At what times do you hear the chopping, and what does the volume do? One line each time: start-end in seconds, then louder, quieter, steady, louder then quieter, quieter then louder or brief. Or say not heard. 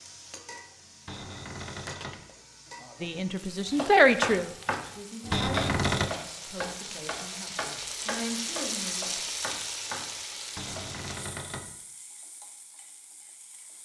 3.6-10.8 quieter.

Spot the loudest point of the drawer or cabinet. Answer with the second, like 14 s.
6 s.